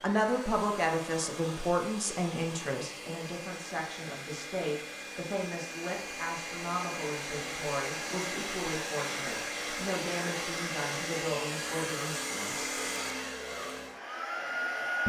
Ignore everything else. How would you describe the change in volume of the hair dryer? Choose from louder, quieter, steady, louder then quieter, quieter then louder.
louder.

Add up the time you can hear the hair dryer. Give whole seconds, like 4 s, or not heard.
15 s.